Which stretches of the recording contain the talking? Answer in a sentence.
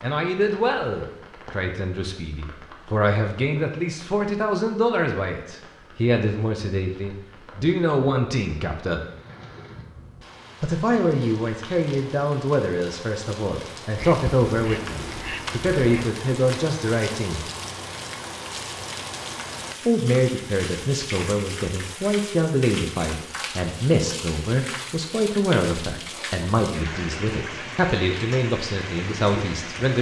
You can hear the talking from 0.0 to 9.0 s, from 10.6 to 17.5 s and from 19.9 to 29.9 s.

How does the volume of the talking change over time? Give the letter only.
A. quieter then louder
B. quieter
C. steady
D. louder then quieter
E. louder
C.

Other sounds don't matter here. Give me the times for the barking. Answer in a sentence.
The barking can't be heard in this clip.